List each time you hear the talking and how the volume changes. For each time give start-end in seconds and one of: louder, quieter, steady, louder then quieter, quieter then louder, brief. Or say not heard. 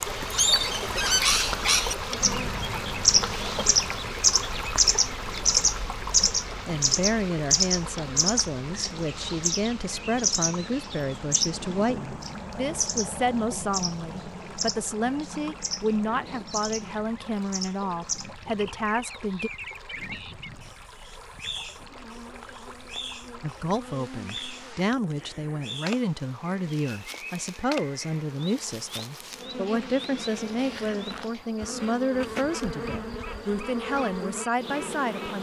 6.2-19.5 steady
23.4-35.3 steady.